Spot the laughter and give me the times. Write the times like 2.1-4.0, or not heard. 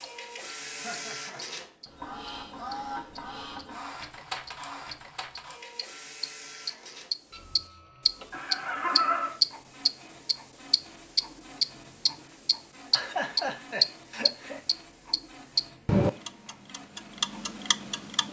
0.7-1.4, 8.3-9.3, 12.9-14.6.